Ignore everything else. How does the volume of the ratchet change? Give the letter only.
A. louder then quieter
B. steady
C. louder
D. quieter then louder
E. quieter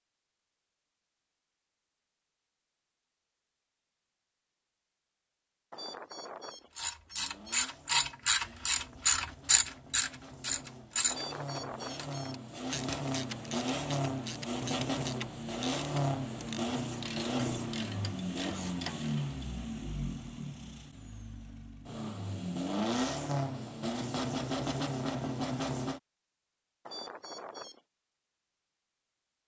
E.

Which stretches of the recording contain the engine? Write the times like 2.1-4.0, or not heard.
7.1-26.0.